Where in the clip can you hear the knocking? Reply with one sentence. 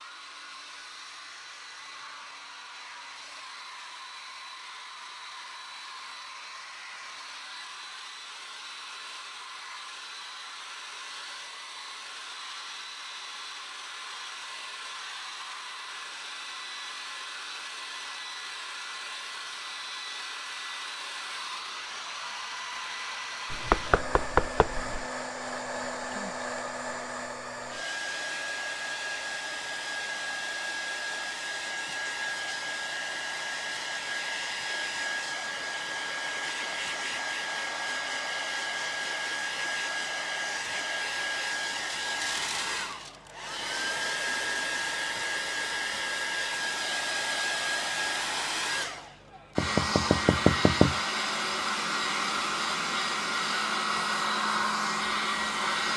The knocking can be heard from 23.5 to 25.1 s and from 49.5 to 51.0 s.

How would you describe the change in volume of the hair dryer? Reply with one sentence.
The volume of the hair dryer goes up.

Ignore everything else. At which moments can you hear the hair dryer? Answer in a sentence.
You can hear the hair dryer from 0.0 to 55.9 s.